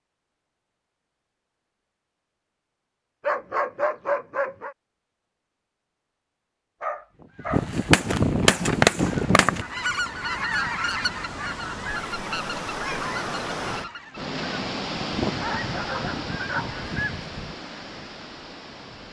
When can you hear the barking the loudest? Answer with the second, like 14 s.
4 s.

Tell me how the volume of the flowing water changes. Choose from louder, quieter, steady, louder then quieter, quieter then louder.
louder then quieter.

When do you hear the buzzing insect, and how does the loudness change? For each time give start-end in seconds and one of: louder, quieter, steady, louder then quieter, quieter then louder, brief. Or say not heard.
not heard.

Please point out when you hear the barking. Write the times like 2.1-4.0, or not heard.
3.2-4.8, 6.8-7.7, 15.4-16.8.